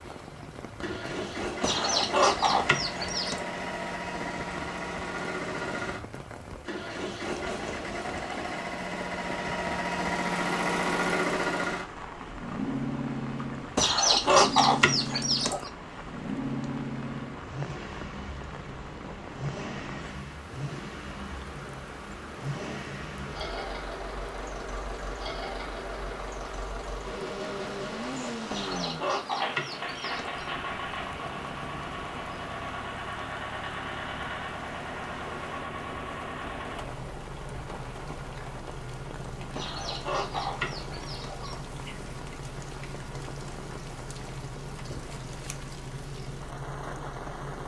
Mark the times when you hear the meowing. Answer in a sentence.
The meowing can't be heard in this clip.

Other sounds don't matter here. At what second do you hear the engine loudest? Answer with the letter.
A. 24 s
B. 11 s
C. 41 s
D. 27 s
B.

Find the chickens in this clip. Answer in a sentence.
The chickens can be heard from 1.6 to 3.5 s, from 13.8 to 15.7 s, from 28.5 to 30.4 s and from 39.5 to 41.5 s.